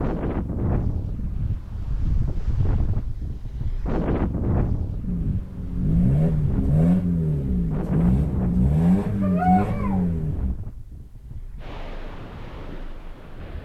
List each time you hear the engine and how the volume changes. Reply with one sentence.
You can hear the engine from 5.0 to 10.6 s, at a steady volume.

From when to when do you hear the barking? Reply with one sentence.
The barking can be heard from 9.2 to 10.1 s.